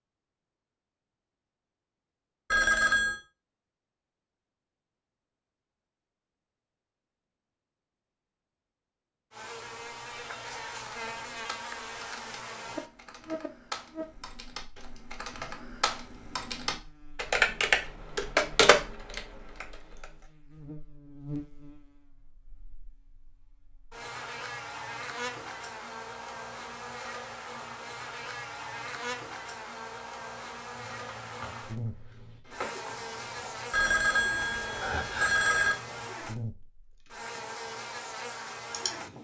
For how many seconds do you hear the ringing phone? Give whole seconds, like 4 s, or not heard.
3 s.